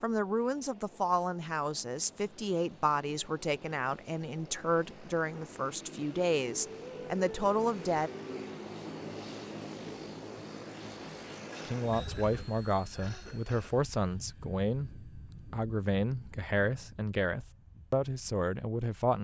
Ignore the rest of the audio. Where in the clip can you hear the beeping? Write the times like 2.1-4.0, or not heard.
not heard.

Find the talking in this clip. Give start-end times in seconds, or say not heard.
0.0-8.1, 11.7-19.2.